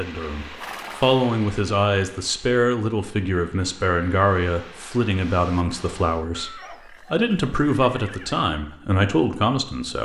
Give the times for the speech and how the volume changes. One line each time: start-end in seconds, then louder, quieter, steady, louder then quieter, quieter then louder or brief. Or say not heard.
0.0-9.9 steady.